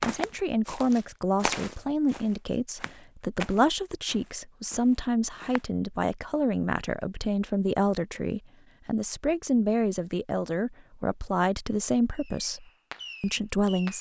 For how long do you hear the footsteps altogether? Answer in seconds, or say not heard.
6 s.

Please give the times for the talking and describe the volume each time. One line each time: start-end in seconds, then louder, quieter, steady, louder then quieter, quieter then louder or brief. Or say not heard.
0.0-13.9 steady.